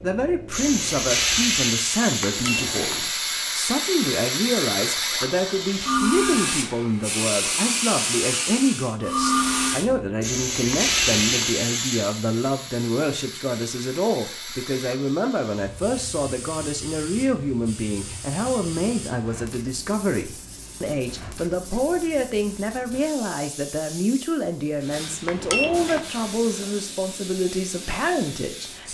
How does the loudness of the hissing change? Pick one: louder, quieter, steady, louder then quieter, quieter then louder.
quieter.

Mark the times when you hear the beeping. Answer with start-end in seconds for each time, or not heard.
2.2-3.1, 10.7-11.7, 25.2-26.1.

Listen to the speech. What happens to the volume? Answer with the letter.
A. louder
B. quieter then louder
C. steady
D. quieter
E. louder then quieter
C.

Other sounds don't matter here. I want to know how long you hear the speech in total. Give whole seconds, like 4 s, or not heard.
29 s.